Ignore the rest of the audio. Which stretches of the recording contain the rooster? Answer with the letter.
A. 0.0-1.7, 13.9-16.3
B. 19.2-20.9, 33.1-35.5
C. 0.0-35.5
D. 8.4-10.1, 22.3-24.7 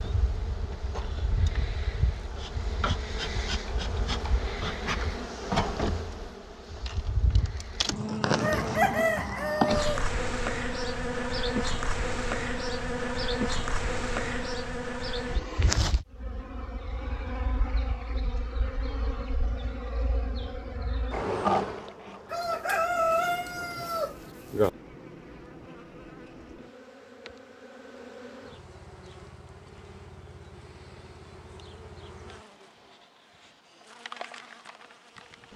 D.